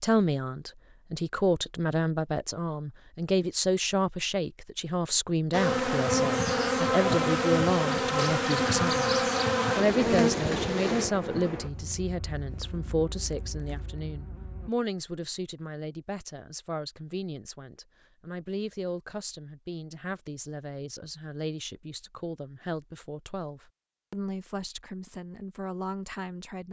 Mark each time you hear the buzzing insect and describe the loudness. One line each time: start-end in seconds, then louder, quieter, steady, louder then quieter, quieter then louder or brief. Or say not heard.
5.5-14.7 quieter.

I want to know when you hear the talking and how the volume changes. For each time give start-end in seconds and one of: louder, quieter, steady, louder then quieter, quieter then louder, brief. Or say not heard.
0.0-26.6 quieter.